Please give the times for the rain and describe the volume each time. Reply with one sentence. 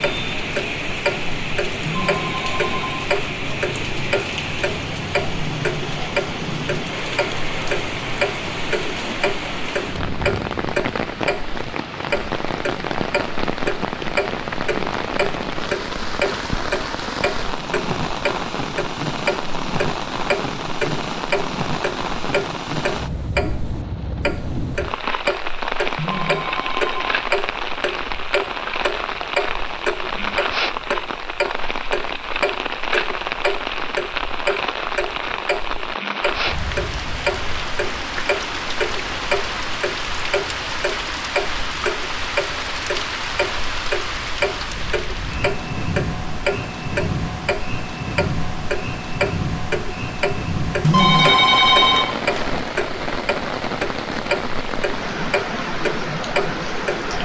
The rain can be heard from 0.0 to 57.2 s, at a steady volume.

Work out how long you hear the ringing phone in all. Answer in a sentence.
You can hear the ringing phone for 4 seconds altogether.